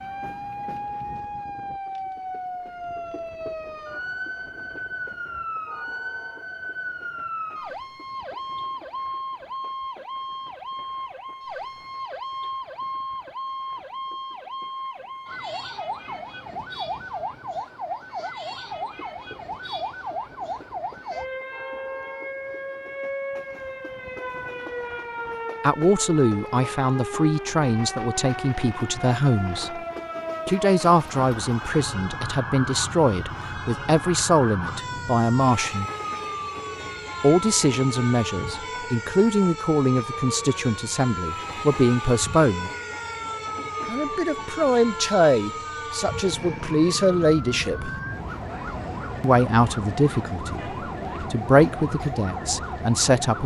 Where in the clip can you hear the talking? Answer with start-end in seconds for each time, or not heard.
25.6-29.8, 30.4-35.9, 37.2-42.7, 43.9-47.9, 49.2-53.4.